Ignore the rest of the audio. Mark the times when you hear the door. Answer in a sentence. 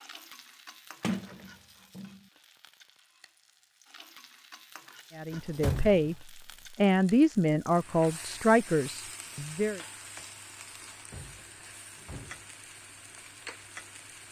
You can hear the door from 1.0 to 2.2 s, from 5.3 to 6.2 s and from 10.8 to 12.5 s.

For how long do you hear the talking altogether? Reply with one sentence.
You can hear the talking for 5 seconds altogether.